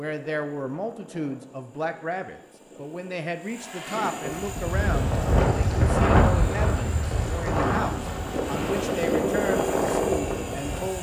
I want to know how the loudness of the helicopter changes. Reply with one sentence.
The volume of the helicopter goes up.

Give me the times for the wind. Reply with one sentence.
The wind can be heard from 4.2 to 10.9 s.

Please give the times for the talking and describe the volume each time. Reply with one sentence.
You can hear the talking from 0.0 to 10.9 s, at a steady volume.